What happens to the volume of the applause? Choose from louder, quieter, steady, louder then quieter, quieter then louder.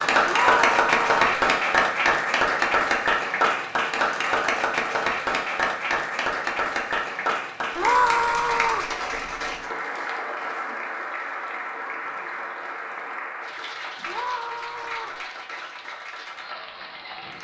quieter.